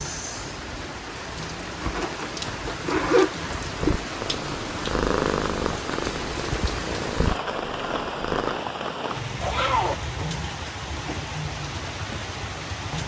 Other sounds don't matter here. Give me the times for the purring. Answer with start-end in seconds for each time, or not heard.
3.8-8.6.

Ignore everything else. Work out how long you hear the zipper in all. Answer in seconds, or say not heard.
3 s.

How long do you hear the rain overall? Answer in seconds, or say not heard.
13 s.